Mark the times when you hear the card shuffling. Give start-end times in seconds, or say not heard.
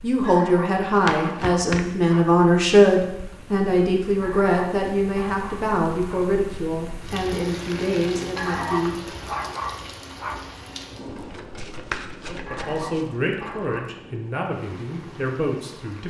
1.0-1.9, 7.6-8.3, 11.1-13.1.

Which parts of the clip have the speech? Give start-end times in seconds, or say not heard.
0.0-9.2, 12.2-16.0.